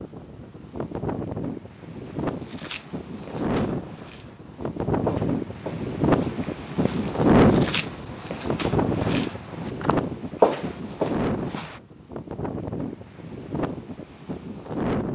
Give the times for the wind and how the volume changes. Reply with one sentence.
You can hear the wind from 0.0 to 15.1 s, getting louder then quieter.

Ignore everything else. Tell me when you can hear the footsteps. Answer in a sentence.
You can hear the footsteps from 2.0 to 11.8 s.